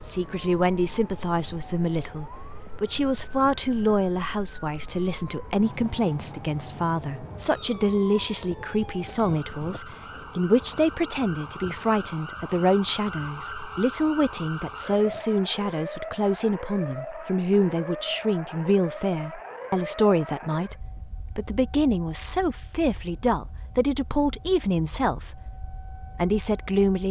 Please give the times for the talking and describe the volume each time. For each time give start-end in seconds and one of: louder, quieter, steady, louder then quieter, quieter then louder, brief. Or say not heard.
0.0-27.0 steady.